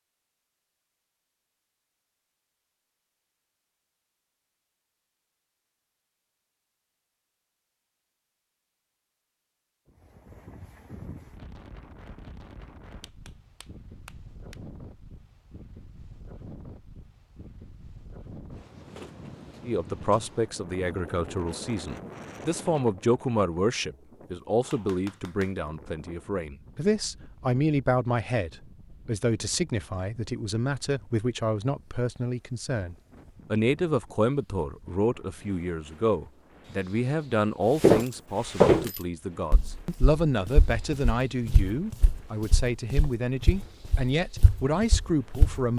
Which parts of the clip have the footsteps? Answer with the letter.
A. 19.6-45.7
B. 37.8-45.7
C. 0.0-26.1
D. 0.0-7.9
B.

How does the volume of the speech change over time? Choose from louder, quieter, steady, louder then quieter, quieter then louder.
steady.